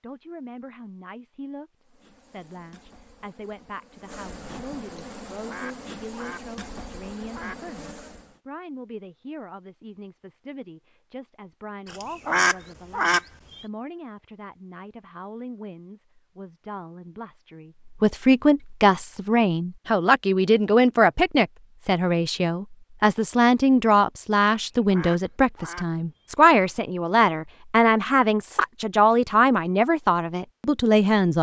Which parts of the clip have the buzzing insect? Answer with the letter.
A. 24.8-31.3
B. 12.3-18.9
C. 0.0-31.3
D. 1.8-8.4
D.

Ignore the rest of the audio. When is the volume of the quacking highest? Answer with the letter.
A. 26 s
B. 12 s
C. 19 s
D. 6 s
B.